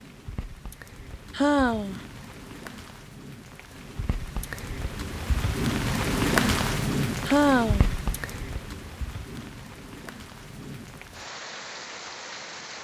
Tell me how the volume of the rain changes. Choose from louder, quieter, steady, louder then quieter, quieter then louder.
louder then quieter.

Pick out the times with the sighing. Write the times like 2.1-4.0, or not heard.
1.3-2.0, 7.2-7.9.